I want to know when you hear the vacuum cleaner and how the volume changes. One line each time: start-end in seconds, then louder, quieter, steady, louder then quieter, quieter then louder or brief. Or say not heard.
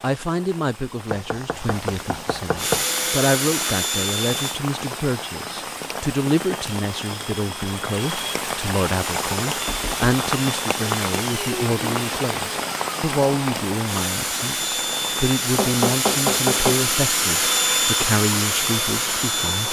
2.5-4.6 brief
9.0-19.6 louder.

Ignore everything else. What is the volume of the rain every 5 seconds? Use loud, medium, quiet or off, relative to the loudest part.
medium, loud, loud, medium.